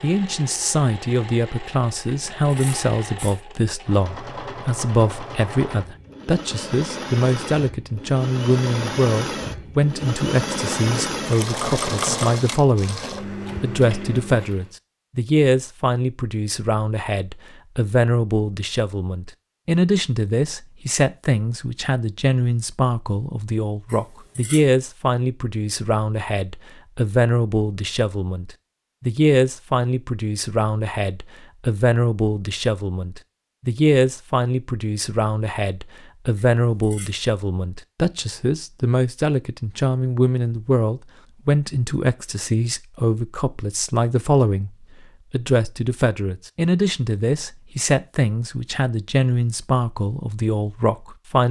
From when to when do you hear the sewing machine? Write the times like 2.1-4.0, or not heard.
0.0-14.7.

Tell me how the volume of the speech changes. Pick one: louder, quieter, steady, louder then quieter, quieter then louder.
steady.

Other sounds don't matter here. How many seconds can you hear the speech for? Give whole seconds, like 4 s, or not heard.
50 s.